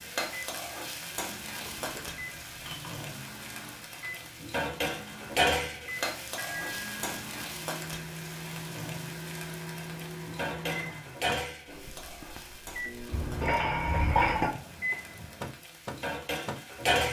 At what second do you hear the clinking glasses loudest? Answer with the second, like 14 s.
14 s.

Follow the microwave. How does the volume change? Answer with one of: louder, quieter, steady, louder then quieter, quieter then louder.
louder.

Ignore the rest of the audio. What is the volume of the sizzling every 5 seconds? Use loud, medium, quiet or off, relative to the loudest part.
medium, loud, medium, loud.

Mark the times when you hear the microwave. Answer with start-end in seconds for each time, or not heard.
0.1-17.0.